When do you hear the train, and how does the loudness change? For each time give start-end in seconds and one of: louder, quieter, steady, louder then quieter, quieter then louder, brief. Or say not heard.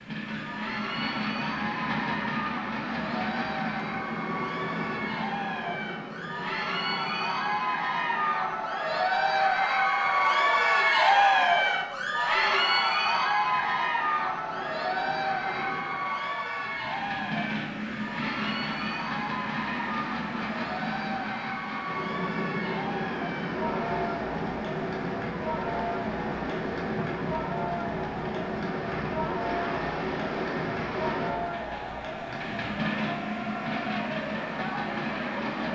0.0-35.7 quieter then louder.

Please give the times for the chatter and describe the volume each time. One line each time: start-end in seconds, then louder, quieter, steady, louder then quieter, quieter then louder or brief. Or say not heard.
0.1-35.7 louder then quieter.